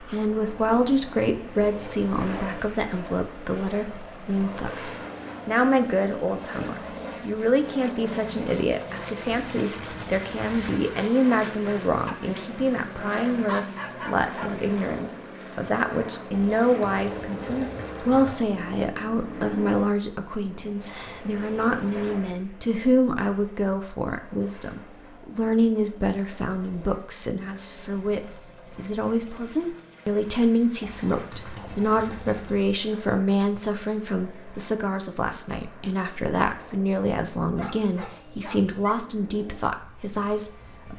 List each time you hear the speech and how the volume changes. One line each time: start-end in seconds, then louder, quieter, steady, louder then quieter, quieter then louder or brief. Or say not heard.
0.0-40.9 steady.